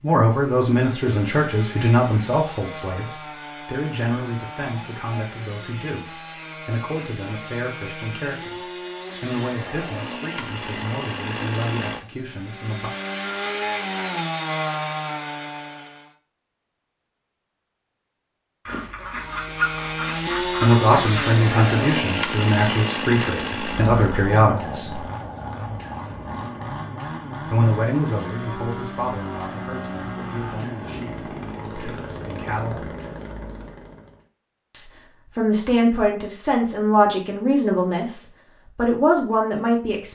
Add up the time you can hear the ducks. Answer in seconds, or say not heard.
3 s.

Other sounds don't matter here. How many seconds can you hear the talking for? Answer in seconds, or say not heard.
28 s.